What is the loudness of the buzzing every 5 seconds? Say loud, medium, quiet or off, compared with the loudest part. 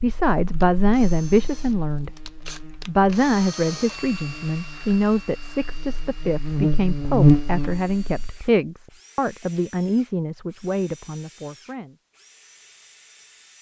quiet, loud, off.